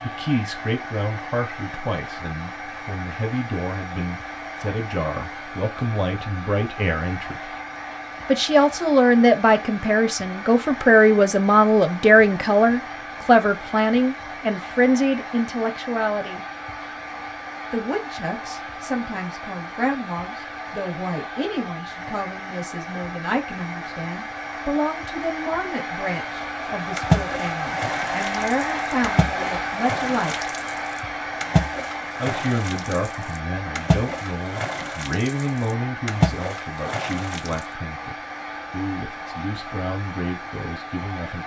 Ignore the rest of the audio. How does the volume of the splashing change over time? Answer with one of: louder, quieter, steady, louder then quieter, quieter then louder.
louder.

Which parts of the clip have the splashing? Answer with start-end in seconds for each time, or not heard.
26.9-37.6.